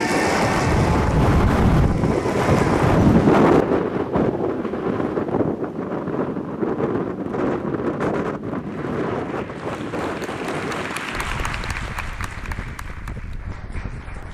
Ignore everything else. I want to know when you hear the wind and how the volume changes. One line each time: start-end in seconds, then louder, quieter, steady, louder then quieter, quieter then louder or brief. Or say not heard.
0.0-14.2 quieter.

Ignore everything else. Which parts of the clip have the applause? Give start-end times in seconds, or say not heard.
0.0-2.9, 8.6-14.2.